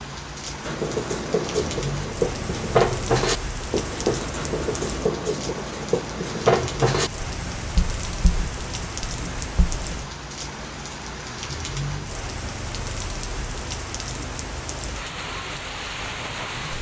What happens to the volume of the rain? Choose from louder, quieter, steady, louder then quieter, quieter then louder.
steady.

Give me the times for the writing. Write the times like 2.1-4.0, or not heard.
0.7-9.9.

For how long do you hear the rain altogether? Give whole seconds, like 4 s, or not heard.
17 s.